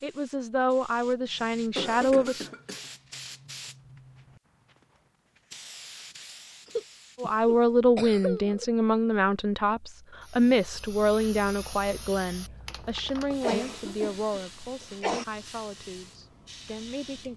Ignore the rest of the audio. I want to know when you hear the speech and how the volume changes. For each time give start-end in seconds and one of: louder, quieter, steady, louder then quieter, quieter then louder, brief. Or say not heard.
0.0-2.5 brief
7.2-17.3 quieter.